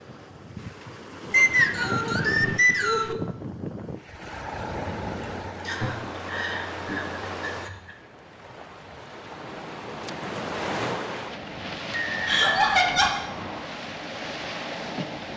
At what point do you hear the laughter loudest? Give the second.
13 s.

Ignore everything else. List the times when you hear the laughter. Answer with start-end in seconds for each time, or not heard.
1.3-3.2, 5.2-7.9, 12.2-13.2.